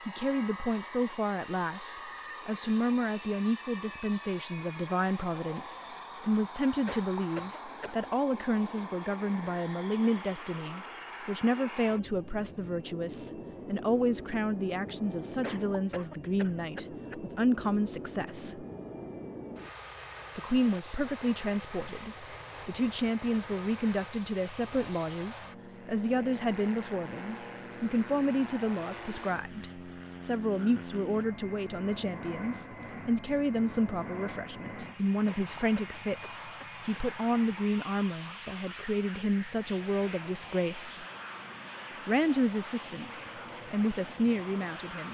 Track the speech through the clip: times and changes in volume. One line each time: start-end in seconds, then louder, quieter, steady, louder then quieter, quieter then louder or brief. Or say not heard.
0.1-18.6 steady
20.4-41.0 steady
42.0-45.0 brief.